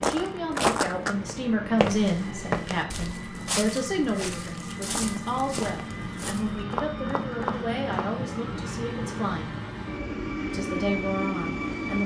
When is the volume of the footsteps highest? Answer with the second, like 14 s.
1 s.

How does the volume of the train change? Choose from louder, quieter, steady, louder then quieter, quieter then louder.
louder.